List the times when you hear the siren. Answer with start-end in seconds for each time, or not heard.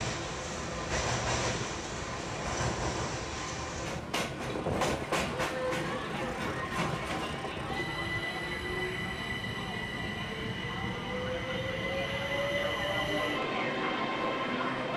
not heard.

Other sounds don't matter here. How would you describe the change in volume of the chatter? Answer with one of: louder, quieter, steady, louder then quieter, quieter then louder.
quieter then louder.